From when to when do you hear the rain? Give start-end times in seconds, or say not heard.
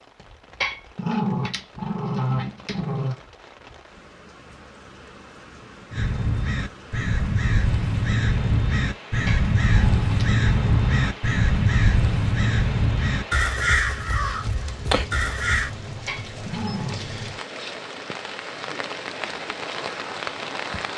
0.0-20.9.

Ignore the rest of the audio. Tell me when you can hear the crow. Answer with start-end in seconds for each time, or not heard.
5.9-15.7.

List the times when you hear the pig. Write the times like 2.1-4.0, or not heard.
not heard.